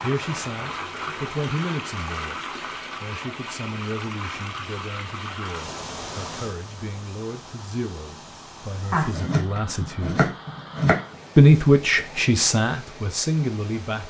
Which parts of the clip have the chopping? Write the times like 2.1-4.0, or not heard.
8.9-10.9.